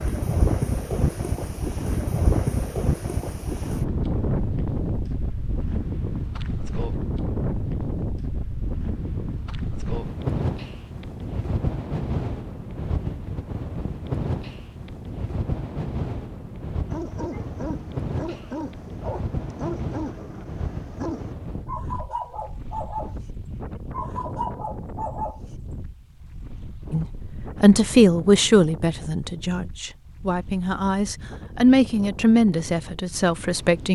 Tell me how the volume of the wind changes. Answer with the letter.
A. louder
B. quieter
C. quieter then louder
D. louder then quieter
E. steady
B.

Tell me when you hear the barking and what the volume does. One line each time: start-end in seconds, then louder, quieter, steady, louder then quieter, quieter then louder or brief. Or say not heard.
16.9-23.1 steady
23.9-25.4 brief.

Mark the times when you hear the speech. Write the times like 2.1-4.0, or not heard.
26.9-33.9.